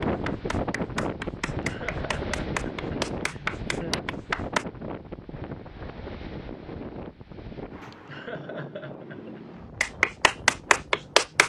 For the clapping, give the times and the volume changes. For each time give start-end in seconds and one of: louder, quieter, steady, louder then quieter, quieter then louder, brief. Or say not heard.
0.0-4.7 louder then quieter
9.8-11.4 brief.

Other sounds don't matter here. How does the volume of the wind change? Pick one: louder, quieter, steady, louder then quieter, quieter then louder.
quieter.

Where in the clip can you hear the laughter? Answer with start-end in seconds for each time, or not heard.
1.6-4.0, 8.1-9.4.